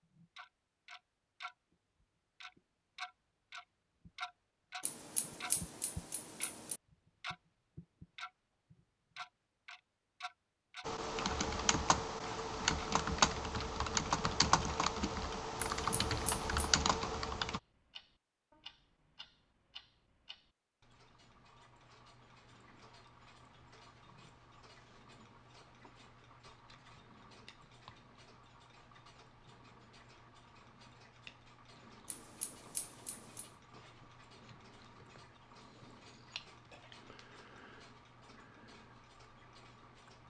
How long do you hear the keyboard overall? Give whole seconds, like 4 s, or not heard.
7 s.